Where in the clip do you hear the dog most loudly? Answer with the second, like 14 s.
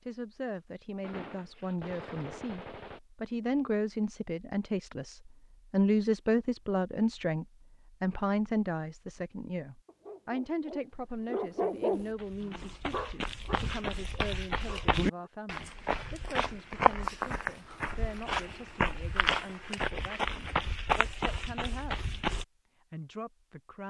12 s.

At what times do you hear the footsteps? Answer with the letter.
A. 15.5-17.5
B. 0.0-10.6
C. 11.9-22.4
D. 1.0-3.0
C.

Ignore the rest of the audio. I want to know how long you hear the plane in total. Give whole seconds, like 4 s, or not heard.
not heard.